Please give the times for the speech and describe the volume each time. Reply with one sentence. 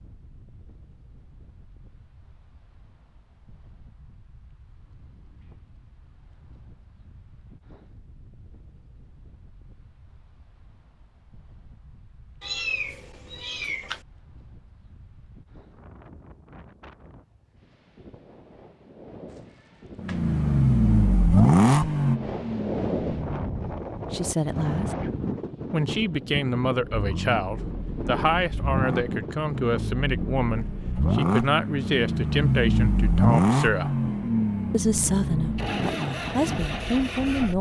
The speech can be heard briefly from 24.1 to 24.9 s; from 25.7 to 34.0 s, at a steady volume; and briefly from 34.7 to 37.5 s.